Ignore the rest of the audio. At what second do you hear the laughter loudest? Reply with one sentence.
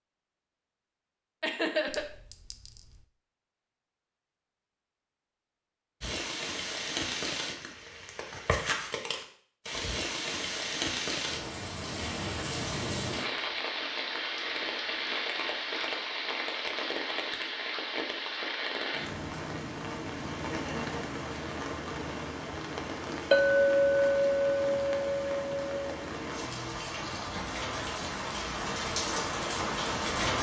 The loudest moment of the laughter is at 2 seconds.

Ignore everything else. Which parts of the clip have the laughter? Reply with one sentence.
The laughter can be heard from 1.4 to 2.0 s and from 20.5 to 21.1 s.